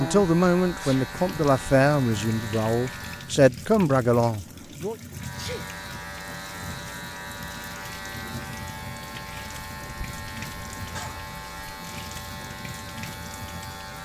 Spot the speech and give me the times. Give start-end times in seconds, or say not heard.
0.0-5.0.